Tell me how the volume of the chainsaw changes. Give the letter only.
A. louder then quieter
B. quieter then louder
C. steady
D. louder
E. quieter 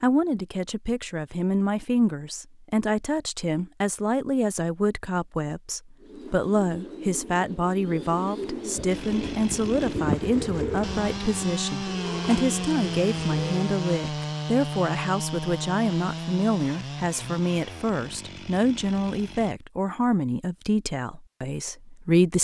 A.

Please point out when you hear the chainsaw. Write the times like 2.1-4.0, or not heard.
8.8-19.6.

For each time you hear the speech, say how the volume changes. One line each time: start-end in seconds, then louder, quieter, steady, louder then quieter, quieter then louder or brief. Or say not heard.
0.0-22.3 steady.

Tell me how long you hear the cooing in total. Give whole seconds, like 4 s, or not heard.
8 s.